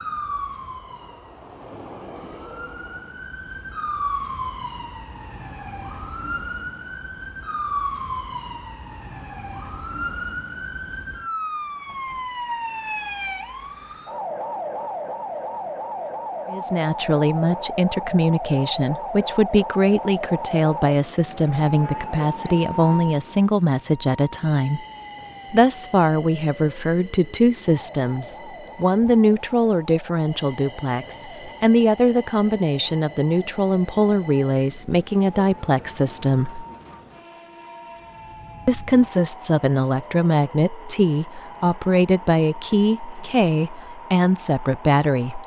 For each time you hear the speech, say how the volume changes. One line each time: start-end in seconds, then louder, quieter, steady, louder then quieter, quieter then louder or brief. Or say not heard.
16.5-24.8 steady
25.5-36.6 steady
38.6-45.4 steady.